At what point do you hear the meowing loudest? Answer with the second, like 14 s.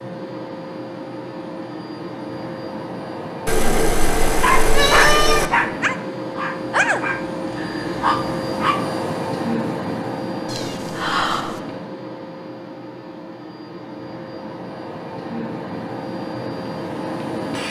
5 s.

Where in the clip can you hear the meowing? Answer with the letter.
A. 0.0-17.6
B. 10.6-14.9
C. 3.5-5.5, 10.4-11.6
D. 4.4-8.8
C.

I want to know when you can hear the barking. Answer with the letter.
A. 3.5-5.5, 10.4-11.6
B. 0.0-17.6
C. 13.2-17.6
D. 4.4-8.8
D.